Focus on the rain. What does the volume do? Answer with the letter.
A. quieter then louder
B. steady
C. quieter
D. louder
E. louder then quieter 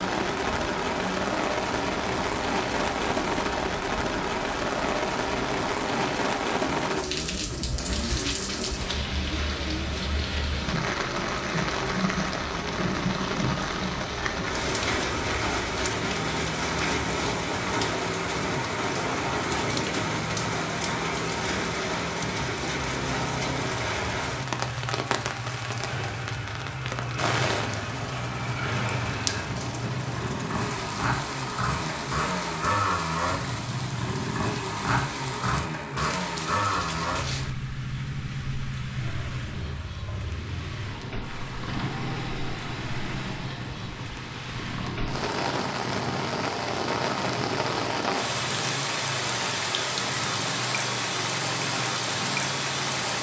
A.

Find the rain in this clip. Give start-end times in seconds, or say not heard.
0.0-53.1.